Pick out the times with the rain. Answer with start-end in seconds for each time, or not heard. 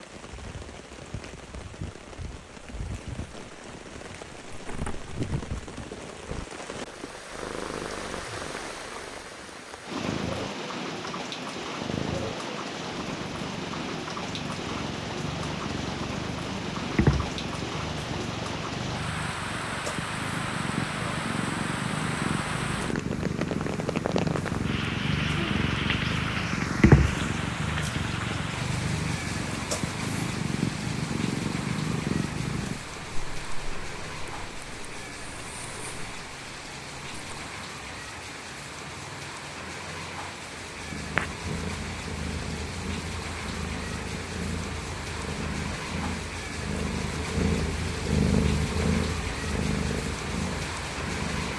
0.0-51.5.